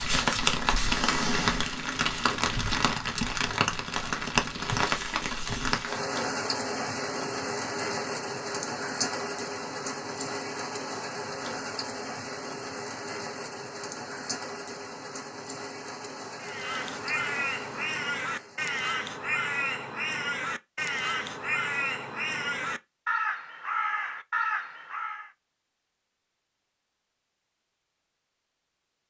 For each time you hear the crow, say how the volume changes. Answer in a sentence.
You can hear the crow from 16.4 to 25.3 s, at a steady volume.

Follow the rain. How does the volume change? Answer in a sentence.
The volume of the rain goes down.